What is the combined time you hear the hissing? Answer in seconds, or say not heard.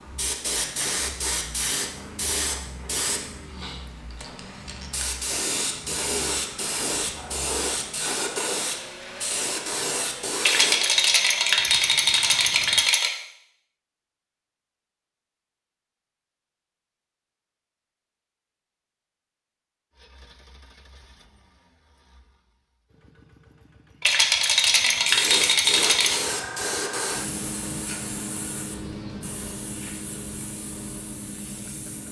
18 s.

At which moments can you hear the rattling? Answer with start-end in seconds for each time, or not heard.
10.4-13.1, 24.0-26.2.